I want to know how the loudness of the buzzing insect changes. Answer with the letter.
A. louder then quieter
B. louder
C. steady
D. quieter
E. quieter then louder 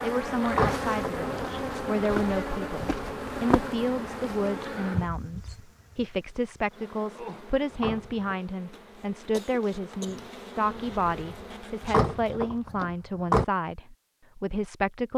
E.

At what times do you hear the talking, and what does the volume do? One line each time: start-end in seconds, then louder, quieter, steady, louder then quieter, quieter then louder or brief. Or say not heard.
0.0-15.1 steady.